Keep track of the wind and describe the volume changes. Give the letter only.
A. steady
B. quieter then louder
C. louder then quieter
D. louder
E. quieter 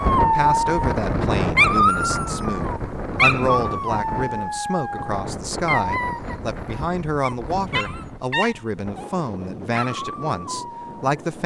E.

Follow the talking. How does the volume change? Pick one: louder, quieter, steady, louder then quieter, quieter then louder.
steady.